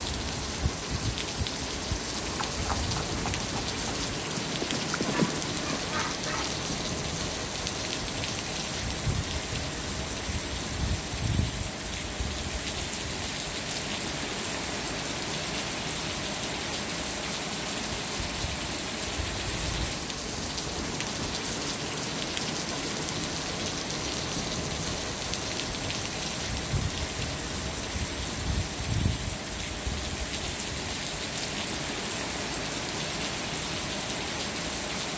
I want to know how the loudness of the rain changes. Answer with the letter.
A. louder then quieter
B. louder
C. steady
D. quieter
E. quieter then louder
C.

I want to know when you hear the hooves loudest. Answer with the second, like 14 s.
5 s.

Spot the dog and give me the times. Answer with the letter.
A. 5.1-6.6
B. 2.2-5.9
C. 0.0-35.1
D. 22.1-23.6
A.